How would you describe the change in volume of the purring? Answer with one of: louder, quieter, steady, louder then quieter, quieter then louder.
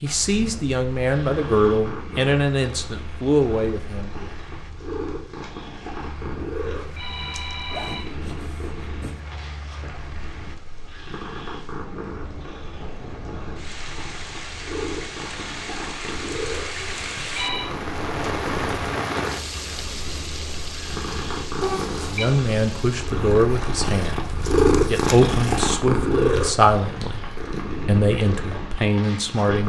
louder.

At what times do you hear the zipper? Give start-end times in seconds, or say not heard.
7.7-9.2.